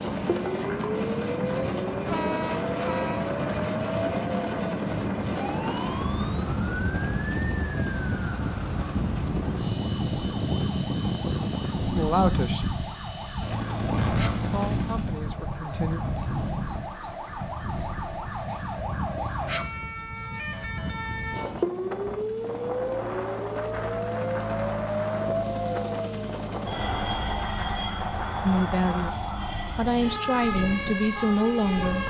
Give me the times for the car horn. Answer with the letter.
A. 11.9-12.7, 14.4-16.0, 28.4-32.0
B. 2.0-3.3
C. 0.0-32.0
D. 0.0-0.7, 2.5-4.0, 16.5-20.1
B.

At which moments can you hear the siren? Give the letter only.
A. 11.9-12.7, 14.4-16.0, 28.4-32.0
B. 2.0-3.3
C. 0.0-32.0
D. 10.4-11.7
C.